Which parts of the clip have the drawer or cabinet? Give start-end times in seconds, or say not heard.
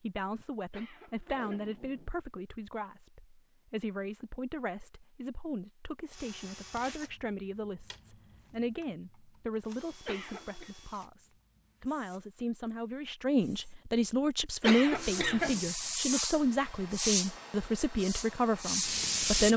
not heard.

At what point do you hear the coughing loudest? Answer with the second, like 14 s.
15 s.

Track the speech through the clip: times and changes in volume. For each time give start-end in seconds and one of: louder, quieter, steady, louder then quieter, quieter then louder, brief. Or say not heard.
0.0-19.5 louder.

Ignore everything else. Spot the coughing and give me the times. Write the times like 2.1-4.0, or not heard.
0.7-1.7, 10.1-10.7, 14.6-15.6.